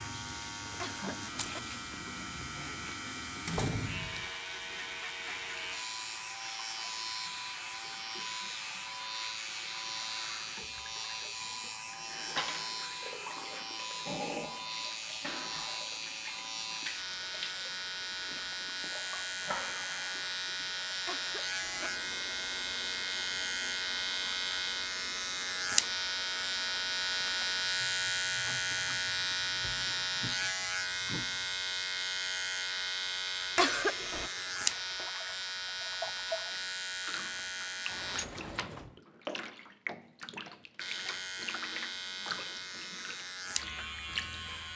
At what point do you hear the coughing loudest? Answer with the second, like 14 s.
34 s.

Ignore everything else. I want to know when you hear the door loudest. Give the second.
4 s.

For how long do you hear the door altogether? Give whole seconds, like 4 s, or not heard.
2 s.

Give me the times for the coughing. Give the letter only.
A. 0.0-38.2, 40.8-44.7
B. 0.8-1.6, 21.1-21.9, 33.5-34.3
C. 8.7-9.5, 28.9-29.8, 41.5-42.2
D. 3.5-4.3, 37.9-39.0
B.